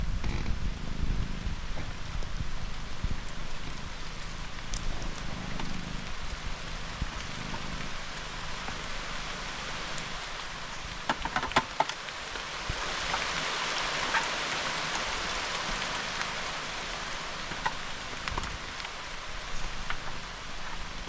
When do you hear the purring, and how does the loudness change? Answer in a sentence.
The purring can be heard from 0.0 to 21.0 s, getting quieter.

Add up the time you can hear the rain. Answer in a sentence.
The rain can be heard for 21 seconds in total.